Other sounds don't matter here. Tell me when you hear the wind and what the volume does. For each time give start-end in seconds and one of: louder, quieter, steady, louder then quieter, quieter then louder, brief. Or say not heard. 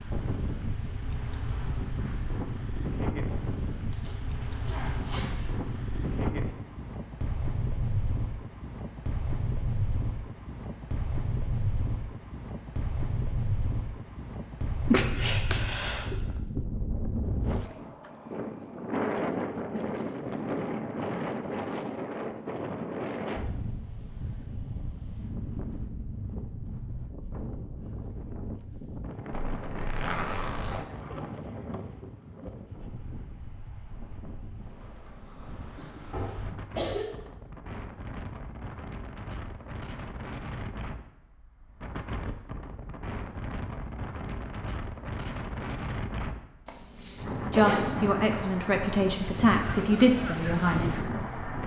0.0-51.6 quieter then louder.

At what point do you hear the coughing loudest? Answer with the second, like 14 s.
15 s.